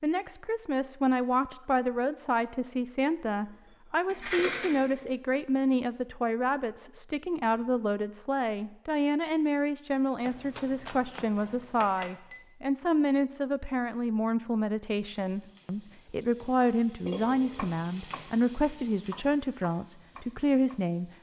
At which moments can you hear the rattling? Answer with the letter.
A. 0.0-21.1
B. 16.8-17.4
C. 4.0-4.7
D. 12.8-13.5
C.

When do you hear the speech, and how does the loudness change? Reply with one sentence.
The speech can be heard from 0.0 to 21.1 s, at a steady volume.